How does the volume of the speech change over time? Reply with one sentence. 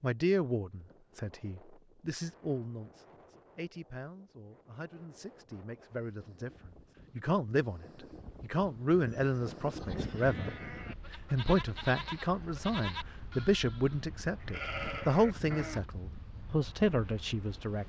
The loudness of the speech goes down, then up.